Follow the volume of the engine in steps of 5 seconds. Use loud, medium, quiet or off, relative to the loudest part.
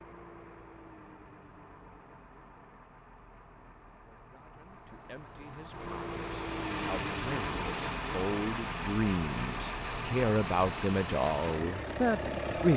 quiet, loud, loud.